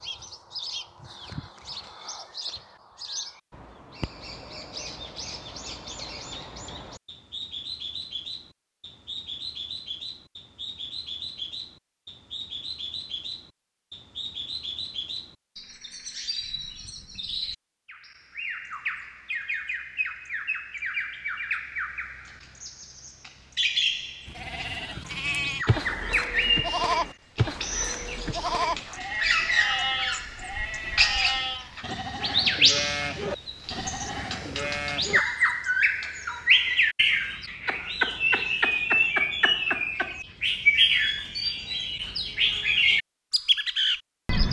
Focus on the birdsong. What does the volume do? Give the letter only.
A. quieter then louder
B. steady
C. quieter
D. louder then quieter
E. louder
E.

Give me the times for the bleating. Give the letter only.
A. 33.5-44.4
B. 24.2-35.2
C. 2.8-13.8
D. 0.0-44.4
B.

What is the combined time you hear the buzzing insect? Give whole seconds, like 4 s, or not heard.
not heard.